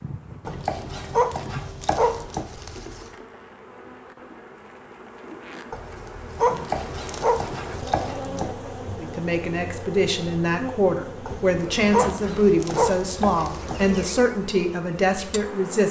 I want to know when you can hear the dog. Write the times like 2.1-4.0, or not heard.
0.5-3.0, 5.7-8.1, 11.2-14.1.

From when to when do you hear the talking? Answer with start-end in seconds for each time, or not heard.
9.0-15.8.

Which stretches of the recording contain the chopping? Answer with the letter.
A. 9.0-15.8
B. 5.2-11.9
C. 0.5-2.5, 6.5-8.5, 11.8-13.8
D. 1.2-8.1
C.